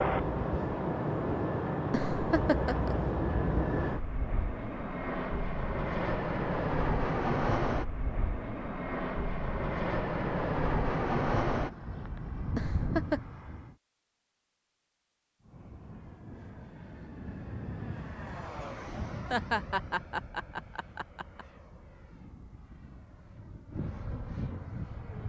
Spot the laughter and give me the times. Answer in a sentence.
The laughter can be heard from 1.9 to 3.0 s, from 12.6 to 13.2 s and from 19.3 to 21.4 s.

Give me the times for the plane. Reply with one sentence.
You can hear the plane from 0.0 to 13.7 s and from 15.4 to 25.2 s.